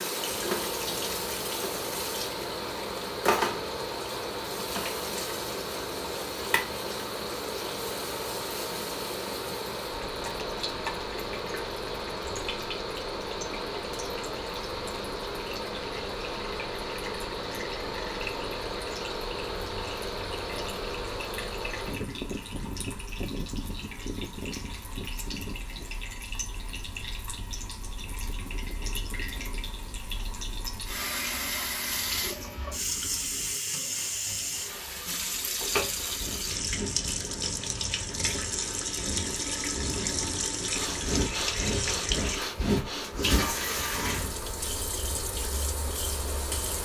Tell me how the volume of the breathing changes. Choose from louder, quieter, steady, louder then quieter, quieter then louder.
louder.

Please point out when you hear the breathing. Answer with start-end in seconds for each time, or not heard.
35.6-44.4.